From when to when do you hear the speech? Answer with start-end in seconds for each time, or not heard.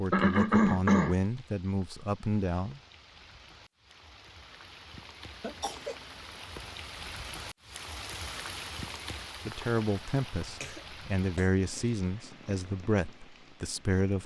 0.0-2.8, 9.4-14.2.